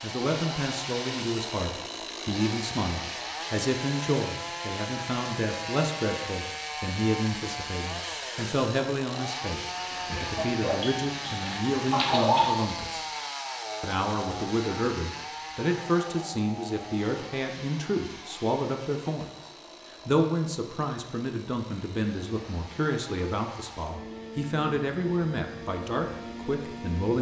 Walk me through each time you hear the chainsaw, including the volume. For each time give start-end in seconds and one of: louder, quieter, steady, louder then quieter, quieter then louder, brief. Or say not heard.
0.0-27.1 quieter.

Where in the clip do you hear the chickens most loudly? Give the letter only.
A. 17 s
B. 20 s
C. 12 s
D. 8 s
C.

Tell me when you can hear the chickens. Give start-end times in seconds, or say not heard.
10.1-12.6.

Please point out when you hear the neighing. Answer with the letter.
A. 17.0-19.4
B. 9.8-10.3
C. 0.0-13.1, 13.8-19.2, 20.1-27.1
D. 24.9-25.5
B.